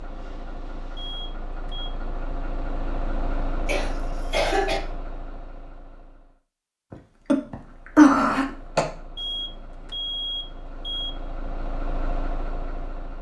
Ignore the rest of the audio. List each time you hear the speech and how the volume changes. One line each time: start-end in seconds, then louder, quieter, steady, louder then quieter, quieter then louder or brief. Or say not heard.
not heard.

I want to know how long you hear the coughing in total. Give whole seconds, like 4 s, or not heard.
3 s.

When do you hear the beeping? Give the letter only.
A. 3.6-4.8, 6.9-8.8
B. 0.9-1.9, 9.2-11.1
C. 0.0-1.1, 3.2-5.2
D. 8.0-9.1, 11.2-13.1
B.